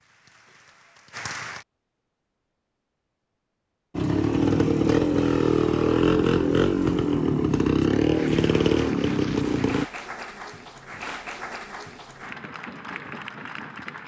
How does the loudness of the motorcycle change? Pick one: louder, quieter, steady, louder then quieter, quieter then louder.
steady.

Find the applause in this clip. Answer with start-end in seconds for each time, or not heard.
0.0-1.6, 8.1-14.0.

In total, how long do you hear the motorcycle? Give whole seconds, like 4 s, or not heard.
6 s.